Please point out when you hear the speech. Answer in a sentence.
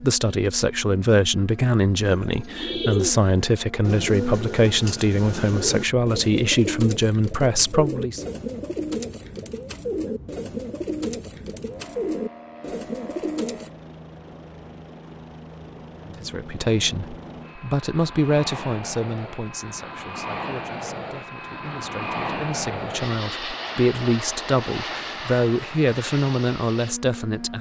You can hear the speech from 0.0 to 8.2 s and from 16.1 to 27.5 s.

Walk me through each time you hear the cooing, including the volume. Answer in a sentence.
You can hear the cooing from 2.0 to 13.7 s, at a steady volume.